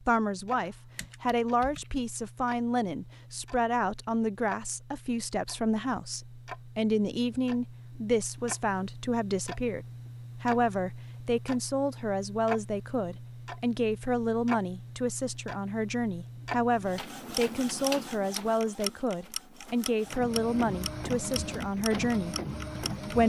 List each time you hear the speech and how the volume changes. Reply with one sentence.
The speech can be heard from 0.0 to 23.2 s, at a steady volume.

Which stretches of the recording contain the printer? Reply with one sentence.
The printer can be heard from 16.7 to 23.2 s.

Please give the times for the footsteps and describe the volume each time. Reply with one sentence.
The footsteps can't be heard in this clip.